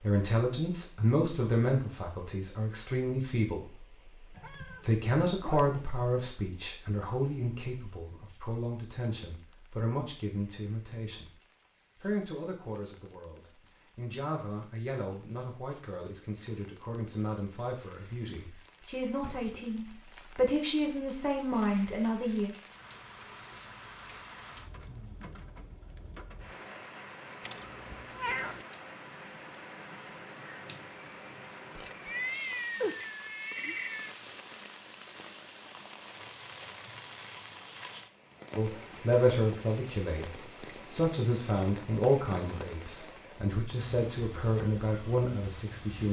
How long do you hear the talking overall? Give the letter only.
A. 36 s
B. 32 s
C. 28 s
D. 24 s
C.